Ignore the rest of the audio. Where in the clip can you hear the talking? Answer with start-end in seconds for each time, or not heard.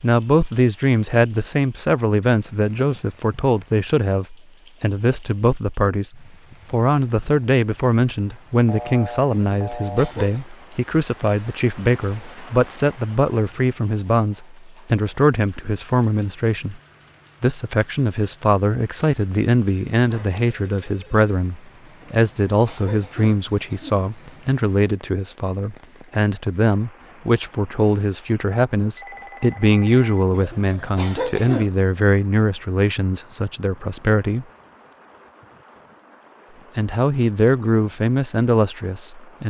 0.0-16.8, 17.4-34.5, 36.8-39.4.